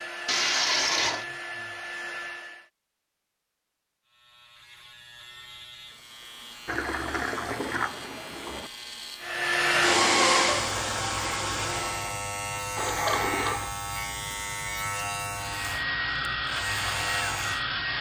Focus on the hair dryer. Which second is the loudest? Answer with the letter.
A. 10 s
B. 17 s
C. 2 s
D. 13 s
A.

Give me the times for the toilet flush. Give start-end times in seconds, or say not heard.
0.2-1.2, 6.7-8.7, 12.8-13.7.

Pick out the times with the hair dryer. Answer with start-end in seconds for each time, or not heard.
0.0-2.7, 9.2-12.2, 15.3-17.9.